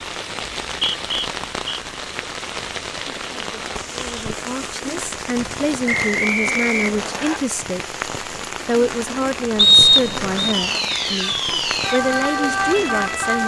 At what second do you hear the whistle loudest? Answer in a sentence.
The loudest moment of the whistle is at 10 seconds.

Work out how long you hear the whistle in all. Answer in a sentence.
You can hear the whistle for 4 seconds altogether.